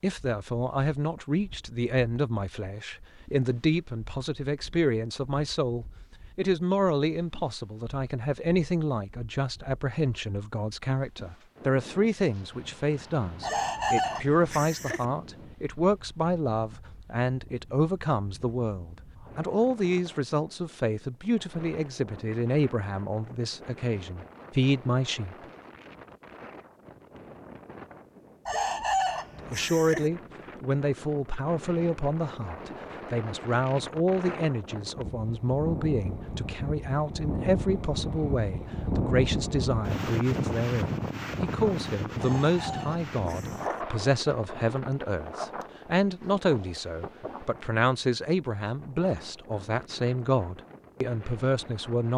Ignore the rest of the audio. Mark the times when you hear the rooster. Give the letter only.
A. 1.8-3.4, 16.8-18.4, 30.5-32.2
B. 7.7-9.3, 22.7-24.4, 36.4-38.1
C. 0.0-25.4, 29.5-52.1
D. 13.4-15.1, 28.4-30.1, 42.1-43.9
D.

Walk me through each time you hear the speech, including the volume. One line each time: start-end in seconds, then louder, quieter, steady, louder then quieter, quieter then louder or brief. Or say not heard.
0.0-25.4 steady
29.5-52.1 steady.